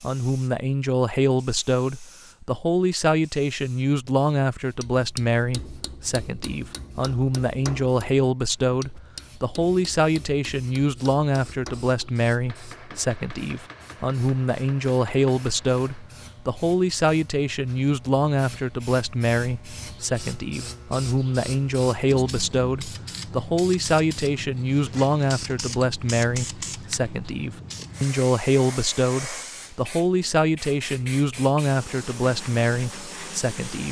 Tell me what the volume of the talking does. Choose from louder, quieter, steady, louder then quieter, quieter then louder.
steady.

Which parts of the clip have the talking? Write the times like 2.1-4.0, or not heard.
0.0-33.8.